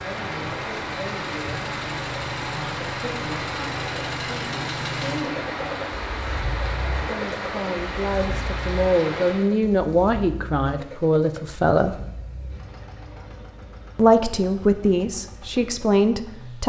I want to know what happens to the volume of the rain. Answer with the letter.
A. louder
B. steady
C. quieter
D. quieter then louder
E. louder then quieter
B.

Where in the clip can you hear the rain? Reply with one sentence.
The rain can be heard from 0.0 to 9.5 s.